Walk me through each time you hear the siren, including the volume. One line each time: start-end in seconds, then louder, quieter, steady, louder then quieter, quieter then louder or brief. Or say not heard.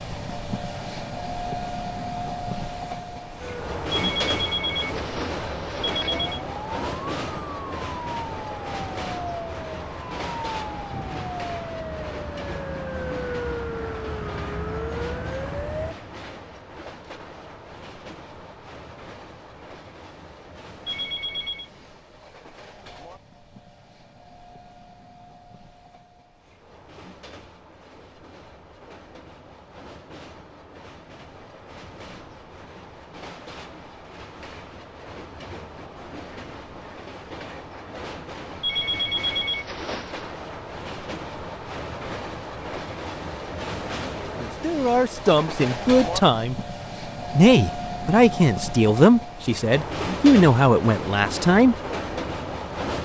3.4-15.9 louder.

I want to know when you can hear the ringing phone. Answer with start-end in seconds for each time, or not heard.
3.9-6.4, 20.9-21.7, 38.6-40.3.